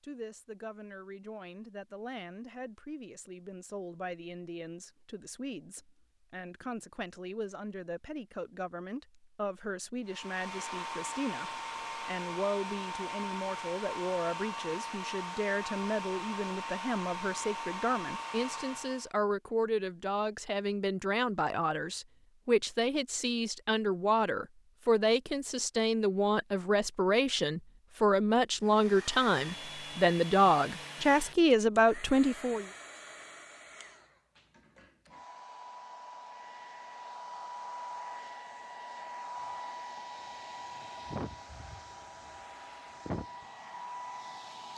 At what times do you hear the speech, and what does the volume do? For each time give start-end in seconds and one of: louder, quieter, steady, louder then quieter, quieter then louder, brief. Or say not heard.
0.0-32.6 louder.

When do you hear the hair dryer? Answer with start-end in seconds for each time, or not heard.
10.1-19.1, 28.6-44.7.